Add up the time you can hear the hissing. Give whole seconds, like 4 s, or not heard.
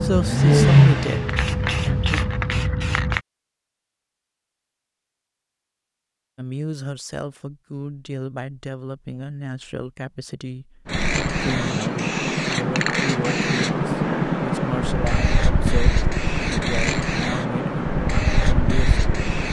12 s.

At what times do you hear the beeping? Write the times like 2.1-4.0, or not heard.
not heard.